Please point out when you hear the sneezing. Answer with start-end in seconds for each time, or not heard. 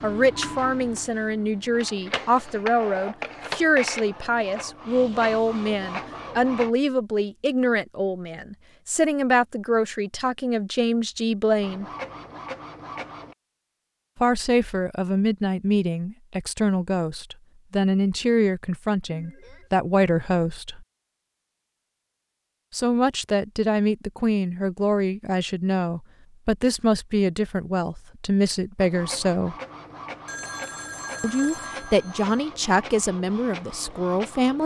not heard.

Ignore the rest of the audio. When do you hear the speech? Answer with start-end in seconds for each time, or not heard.
0.0-11.8, 14.2-20.8, 22.7-29.6, 31.2-34.6.